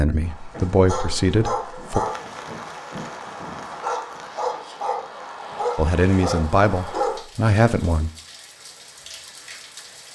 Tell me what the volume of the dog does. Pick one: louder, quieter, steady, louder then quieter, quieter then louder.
steady.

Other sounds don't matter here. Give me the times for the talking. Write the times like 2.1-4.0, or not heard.
0.0-2.0, 5.8-8.1.